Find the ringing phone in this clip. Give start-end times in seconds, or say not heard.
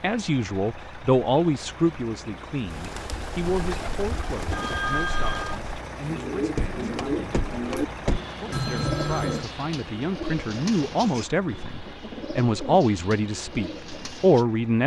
4.5-5.6, 8.5-9.5.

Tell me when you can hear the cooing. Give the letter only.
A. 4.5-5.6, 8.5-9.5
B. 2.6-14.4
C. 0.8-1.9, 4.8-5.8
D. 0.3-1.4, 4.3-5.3
B.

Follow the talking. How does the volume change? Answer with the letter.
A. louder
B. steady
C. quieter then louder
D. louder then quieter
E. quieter
C.